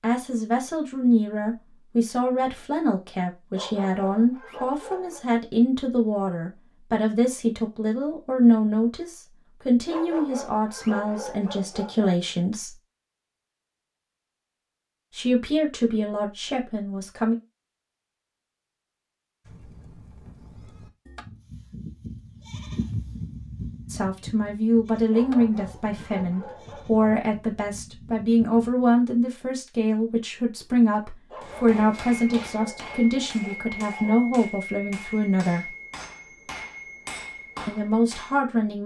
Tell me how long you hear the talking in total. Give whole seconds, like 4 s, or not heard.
28 s.